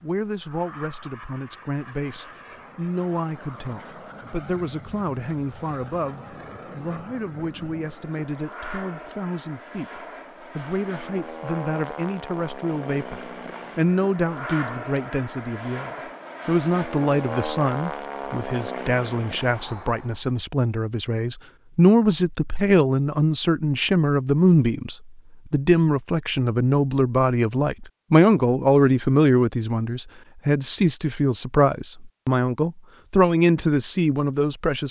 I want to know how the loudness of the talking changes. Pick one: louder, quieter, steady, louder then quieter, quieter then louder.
louder.